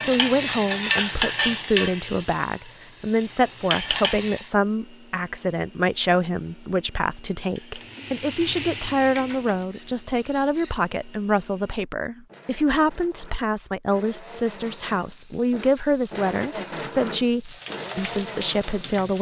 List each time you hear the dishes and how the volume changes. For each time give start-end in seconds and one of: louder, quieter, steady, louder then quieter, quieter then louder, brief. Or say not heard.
not heard.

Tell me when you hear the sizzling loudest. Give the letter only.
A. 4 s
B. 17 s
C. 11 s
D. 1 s
D.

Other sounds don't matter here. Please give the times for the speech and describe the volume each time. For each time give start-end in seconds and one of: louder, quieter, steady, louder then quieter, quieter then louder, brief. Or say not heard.
0.0-19.1 steady.